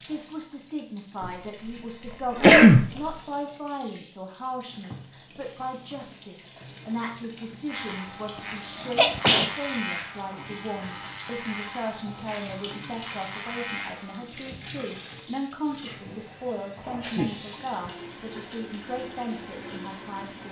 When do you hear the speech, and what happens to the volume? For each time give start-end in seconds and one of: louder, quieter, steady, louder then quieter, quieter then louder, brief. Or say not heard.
0.1-20.4 steady.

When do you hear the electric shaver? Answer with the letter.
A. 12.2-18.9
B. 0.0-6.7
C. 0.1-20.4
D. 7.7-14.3
D.